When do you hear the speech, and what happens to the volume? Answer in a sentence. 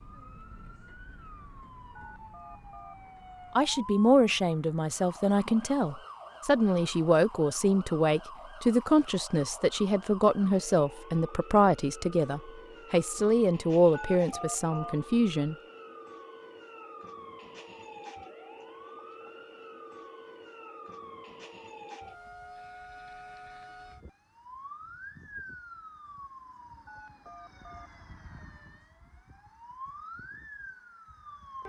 The speech can be heard from 3.5 to 15.6 s, at a steady volume.